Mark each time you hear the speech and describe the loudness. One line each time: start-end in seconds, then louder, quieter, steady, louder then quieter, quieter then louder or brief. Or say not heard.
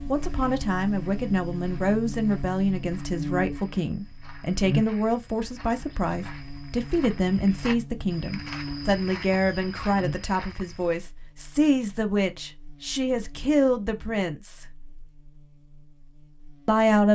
0.1-14.7 steady
16.6-17.1 brief.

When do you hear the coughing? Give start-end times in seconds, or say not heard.
not heard.